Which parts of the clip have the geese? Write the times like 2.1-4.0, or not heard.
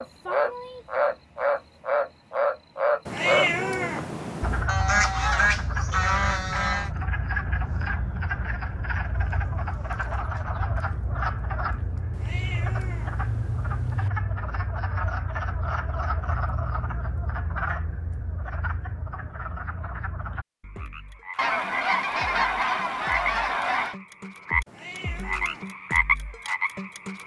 4.7-6.9, 21.4-23.9.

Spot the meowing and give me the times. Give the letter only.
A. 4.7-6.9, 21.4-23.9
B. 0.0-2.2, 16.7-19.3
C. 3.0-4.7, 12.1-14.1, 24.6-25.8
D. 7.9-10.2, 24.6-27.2
C.